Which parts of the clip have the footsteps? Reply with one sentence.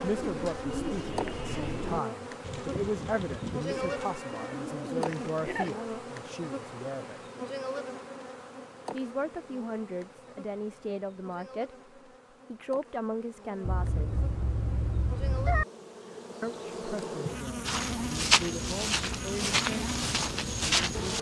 The footsteps can be heard from 17.6 to 21.1 s.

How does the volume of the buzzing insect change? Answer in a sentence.
The volume of the buzzing insect goes down, then up.